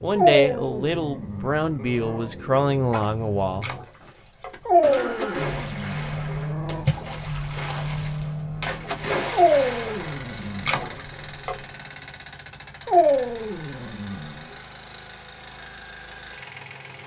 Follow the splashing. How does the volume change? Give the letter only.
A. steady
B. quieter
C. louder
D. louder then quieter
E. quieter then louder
C.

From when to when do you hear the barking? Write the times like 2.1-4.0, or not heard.
0.1-2.3, 4.7-6.8, 9.3-10.9, 12.8-14.4.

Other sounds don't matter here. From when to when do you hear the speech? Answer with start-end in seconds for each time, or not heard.
0.0-3.7.